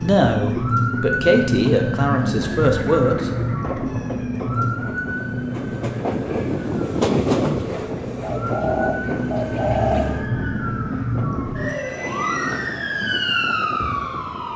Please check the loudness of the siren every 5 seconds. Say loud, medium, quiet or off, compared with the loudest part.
loud, medium, loud.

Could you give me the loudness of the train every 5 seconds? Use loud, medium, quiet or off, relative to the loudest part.
medium, loud, medium.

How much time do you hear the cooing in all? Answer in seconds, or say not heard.
4 s.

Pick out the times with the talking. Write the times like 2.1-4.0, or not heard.
0.0-3.3.